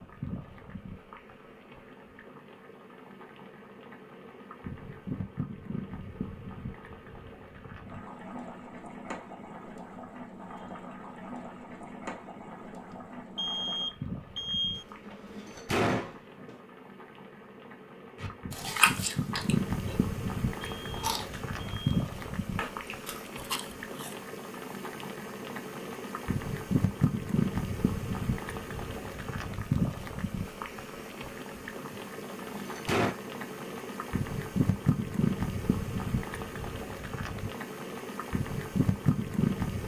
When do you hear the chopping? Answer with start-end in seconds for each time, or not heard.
not heard.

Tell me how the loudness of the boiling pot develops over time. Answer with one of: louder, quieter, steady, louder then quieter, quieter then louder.
louder.